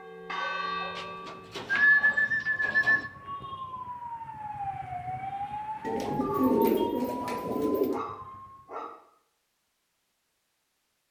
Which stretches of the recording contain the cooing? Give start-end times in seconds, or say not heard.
0.9-3.1, 5.8-8.1.